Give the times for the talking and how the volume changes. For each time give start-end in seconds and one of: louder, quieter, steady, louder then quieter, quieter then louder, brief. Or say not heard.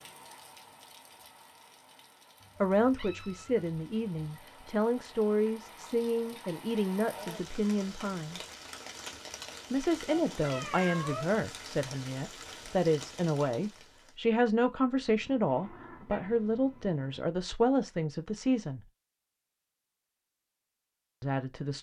2.6-8.4 steady
9.7-18.8 steady
21.2-21.7 brief.